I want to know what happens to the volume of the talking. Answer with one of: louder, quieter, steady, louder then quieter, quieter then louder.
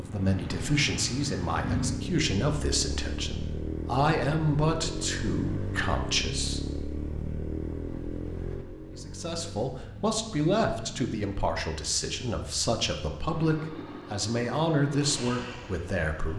steady.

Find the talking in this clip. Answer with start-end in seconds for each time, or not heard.
0.0-6.6, 8.9-16.3.